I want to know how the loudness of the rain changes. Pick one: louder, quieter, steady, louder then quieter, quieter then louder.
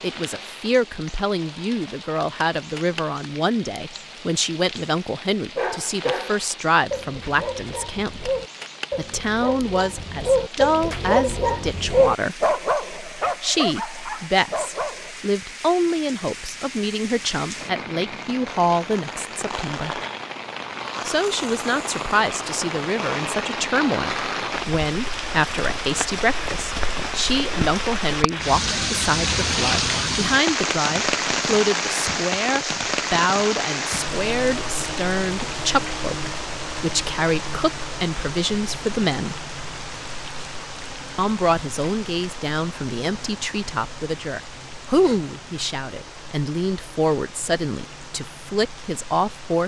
louder then quieter.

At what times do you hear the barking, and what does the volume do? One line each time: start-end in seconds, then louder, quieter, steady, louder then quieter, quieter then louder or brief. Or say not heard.
5.5-15.1 louder then quieter.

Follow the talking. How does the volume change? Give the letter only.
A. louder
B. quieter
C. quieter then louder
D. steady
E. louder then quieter
D.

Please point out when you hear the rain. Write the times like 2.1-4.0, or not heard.
0.0-49.6.